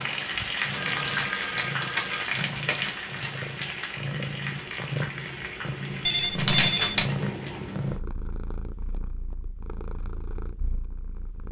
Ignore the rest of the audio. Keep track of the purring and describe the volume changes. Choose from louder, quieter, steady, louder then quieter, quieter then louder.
louder then quieter.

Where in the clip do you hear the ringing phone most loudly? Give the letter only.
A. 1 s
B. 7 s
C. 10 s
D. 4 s
B.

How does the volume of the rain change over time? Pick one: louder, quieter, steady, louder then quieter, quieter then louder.
quieter.